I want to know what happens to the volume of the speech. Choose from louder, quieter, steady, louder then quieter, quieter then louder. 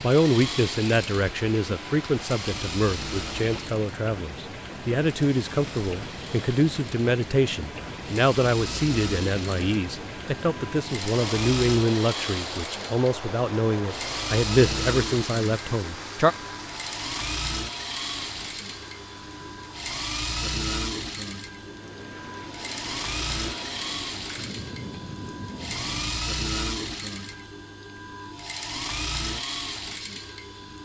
steady.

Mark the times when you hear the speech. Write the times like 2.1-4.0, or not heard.
0.0-16.4.